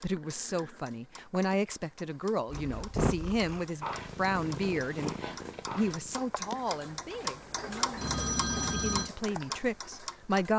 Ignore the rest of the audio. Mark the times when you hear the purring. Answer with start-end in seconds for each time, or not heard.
2.5-6.2.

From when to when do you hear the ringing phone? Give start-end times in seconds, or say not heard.
8.0-9.1.